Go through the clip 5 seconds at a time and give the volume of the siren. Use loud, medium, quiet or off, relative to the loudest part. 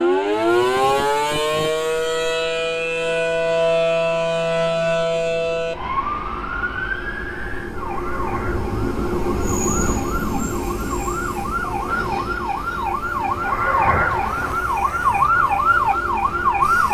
loud, medium, medium, loud.